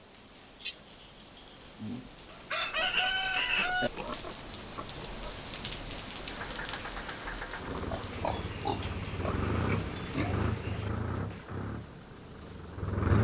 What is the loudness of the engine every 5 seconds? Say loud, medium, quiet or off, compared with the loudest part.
off, loud, loud.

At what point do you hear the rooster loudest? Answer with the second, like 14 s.
3 s.